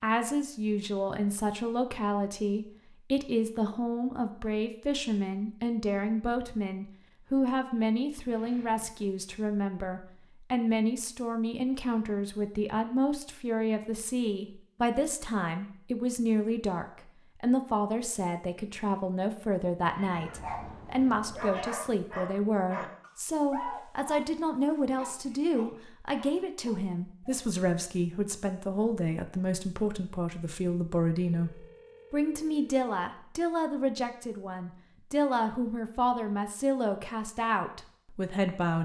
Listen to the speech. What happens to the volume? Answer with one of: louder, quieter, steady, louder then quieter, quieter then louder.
steady.